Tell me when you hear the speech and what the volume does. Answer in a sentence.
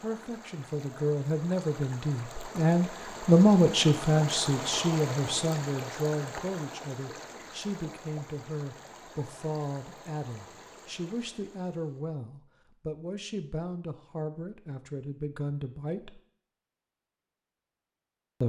You can hear the speech from 0.0 to 16.2 s, getting quieter.